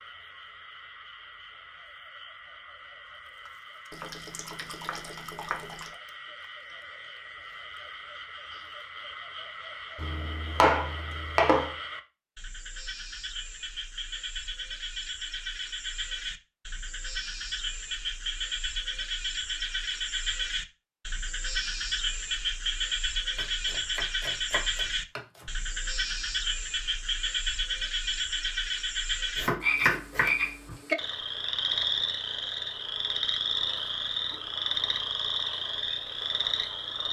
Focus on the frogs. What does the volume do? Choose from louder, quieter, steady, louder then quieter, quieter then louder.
louder.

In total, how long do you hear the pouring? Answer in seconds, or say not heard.
2 s.